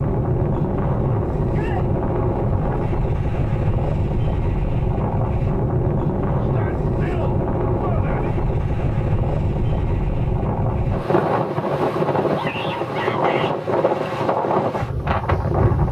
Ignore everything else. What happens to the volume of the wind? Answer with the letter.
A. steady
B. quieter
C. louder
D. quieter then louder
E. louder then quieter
A.